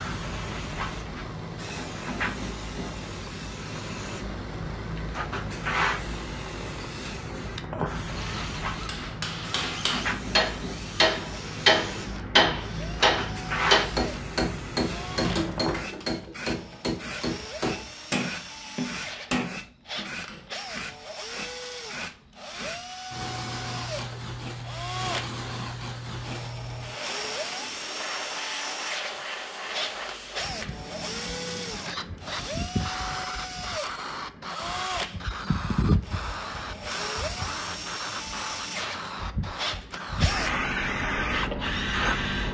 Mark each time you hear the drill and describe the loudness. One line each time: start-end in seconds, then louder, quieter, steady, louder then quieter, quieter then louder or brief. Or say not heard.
0.1-42.5 louder.